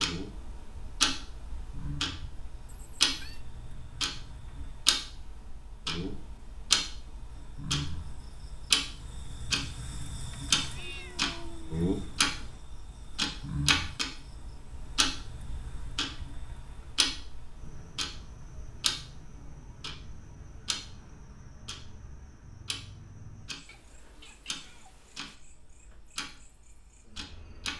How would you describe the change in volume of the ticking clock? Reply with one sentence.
The loudness of the ticking clock goes down.